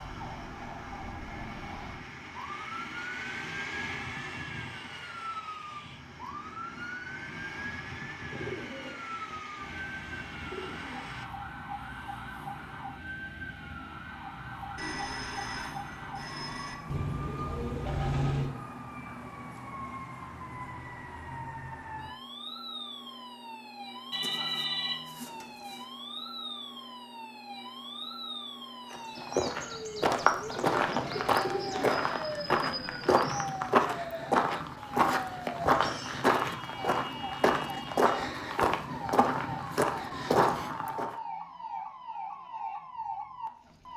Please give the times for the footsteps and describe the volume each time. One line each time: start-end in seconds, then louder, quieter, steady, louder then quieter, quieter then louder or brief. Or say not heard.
28.9-41.1 steady.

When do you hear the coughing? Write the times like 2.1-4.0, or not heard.
not heard.